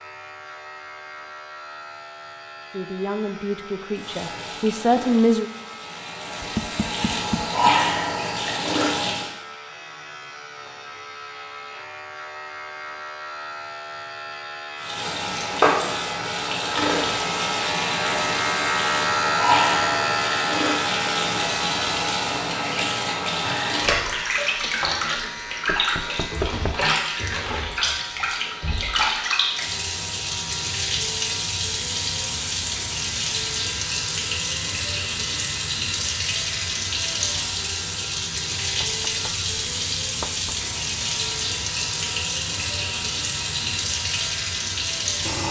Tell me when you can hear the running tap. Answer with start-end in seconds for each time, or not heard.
4.0-9.3, 14.8-45.4.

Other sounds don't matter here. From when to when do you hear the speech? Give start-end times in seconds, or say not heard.
2.7-5.5.